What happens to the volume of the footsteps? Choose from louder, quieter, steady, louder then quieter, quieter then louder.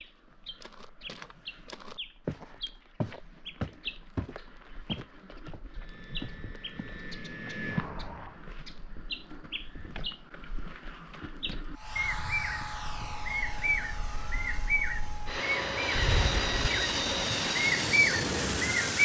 louder then quieter.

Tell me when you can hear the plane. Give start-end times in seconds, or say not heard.
5.7-8.4, 11.7-19.0.